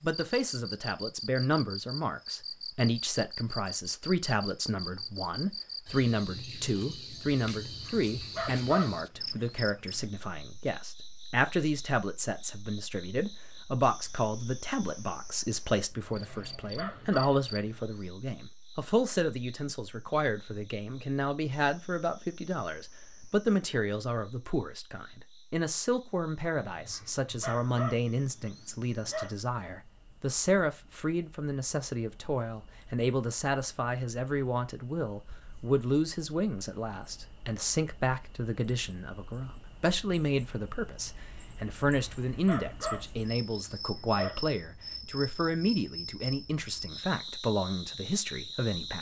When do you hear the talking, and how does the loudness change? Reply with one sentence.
The talking can be heard from 0.0 to 48.9 s, at a steady volume.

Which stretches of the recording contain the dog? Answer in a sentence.
You can hear the dog from 7.5 to 10.1 s, from 15.9 to 18.1 s, from 26.7 to 29.4 s and from 41.9 to 44.5 s.